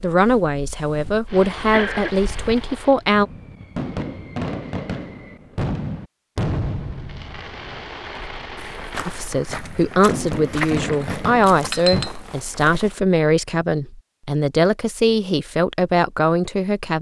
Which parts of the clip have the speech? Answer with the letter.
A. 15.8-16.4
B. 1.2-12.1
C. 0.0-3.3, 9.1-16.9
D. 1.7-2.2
C.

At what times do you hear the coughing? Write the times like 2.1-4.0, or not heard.
1.7-2.2.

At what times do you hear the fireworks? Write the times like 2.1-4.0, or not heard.
1.2-12.1.